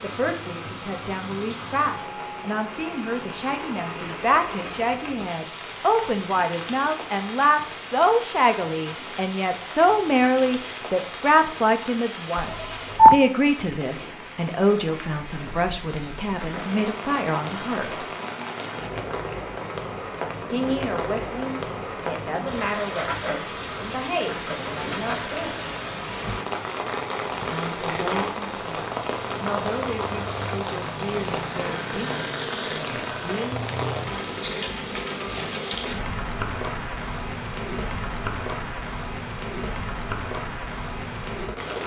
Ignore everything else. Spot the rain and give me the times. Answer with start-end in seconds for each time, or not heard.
0.0-41.8.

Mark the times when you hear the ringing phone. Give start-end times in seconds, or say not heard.
12.3-13.2.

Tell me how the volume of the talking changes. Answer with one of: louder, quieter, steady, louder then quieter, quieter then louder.
louder then quieter.